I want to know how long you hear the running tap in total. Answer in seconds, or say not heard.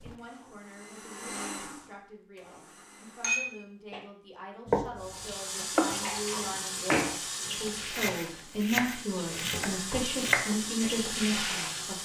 7 s.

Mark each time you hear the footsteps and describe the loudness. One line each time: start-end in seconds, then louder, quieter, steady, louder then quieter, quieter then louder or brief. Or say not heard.
not heard.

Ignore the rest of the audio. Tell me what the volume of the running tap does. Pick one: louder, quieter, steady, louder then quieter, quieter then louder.
quieter then louder.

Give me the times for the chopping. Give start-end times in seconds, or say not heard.
4.7-10.9.